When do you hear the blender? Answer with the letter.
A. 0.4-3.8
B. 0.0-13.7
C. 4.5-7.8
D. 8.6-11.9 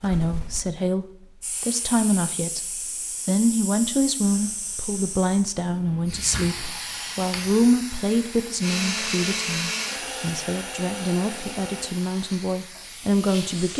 D.